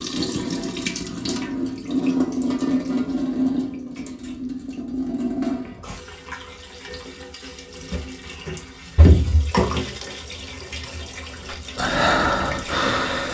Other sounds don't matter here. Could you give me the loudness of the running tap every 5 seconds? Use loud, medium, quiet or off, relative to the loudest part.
loud, loud, medium.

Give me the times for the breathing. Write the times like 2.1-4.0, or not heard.
11.4-13.3.